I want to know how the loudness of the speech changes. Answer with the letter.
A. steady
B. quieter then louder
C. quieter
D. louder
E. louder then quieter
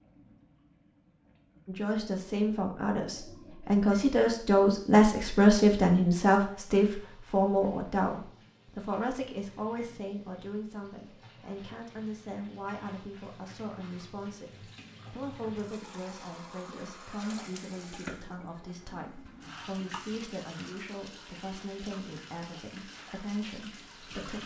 C.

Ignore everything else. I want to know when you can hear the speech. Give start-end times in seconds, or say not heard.
1.6-24.4.